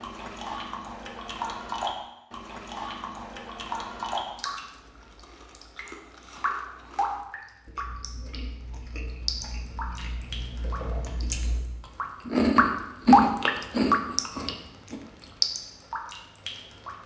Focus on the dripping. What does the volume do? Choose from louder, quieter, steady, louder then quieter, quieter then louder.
louder.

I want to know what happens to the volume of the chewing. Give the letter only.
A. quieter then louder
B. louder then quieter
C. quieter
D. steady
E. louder
E.